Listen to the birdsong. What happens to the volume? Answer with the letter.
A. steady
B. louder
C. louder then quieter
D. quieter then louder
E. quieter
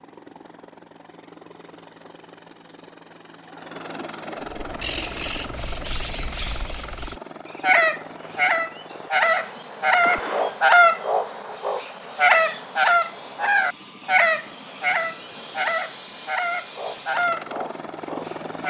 C.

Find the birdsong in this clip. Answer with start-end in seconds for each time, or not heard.
4.5-18.6.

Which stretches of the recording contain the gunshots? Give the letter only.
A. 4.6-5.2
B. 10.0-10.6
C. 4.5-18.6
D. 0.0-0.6
B.